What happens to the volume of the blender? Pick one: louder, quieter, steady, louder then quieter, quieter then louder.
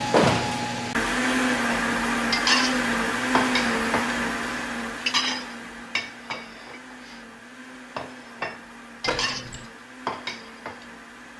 quieter.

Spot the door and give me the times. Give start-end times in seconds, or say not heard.
0.1-0.7, 9.1-9.7.